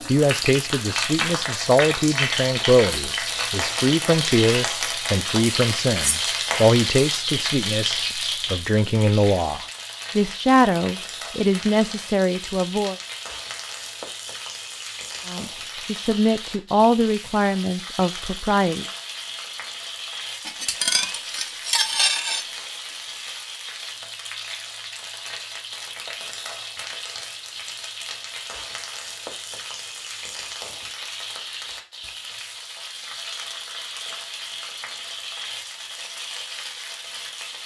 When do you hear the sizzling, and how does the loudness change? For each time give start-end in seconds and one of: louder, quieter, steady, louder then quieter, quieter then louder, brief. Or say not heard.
0.0-37.6 quieter.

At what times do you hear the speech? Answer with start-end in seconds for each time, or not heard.
0.1-12.9, 15.2-18.9.